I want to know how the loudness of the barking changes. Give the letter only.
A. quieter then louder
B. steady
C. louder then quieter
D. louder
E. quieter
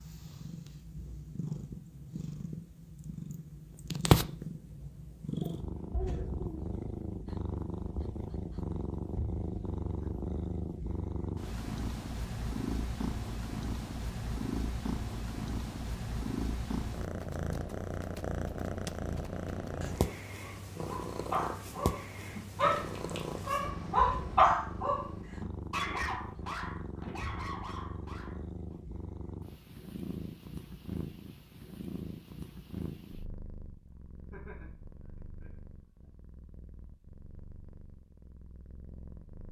C.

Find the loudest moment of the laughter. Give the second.
6 s.